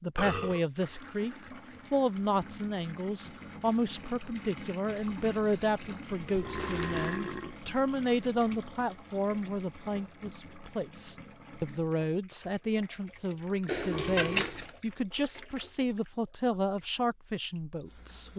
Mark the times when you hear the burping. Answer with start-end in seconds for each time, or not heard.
0.1-1.1, 6.3-7.5, 13.9-14.6.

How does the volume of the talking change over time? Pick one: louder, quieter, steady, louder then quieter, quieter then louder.
steady.